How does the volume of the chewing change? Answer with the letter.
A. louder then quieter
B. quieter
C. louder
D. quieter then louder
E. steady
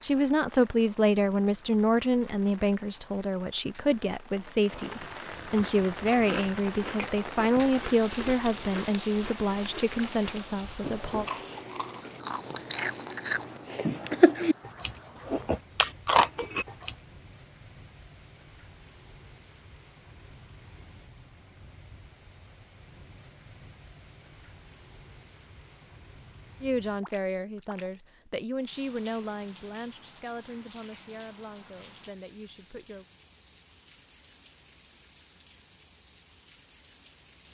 C.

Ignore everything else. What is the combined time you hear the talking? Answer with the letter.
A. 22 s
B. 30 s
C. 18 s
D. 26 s
C.